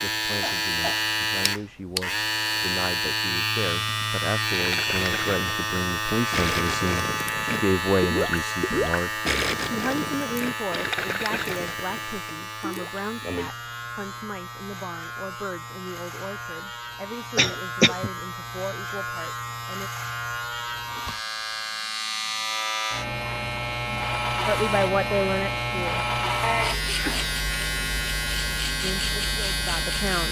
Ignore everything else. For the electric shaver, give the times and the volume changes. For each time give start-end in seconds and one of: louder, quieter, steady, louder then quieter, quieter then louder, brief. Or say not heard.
0.0-30.2 quieter then louder.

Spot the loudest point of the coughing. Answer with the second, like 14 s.
18 s.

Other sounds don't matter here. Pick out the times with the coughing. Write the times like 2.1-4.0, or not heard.
0.4-1.1, 17.4-18.1, 26.4-27.3.